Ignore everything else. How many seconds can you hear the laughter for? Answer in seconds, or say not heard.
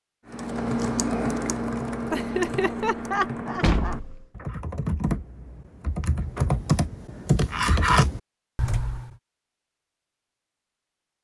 2 s.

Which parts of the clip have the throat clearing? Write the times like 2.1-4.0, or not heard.
not heard.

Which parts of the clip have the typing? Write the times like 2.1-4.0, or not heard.
0.3-9.1.